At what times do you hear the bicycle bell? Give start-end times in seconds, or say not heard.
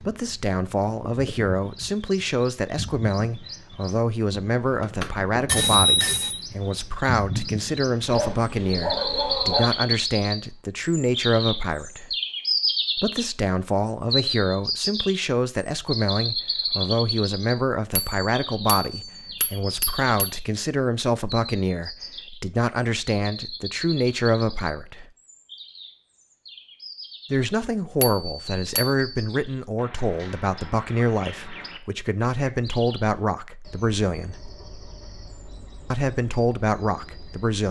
4.8-6.4, 17.9-20.4, 28.0-29.3.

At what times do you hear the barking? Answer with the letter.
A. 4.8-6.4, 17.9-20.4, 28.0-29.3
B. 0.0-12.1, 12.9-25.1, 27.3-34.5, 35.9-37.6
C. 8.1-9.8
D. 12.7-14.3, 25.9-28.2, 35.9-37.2
C.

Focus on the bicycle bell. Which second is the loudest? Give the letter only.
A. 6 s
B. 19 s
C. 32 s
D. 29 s
A.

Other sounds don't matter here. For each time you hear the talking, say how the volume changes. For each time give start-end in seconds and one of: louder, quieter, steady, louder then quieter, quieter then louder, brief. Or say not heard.
0.0-12.1 steady
12.9-25.1 steady
27.3-34.5 steady
35.9-37.6 brief.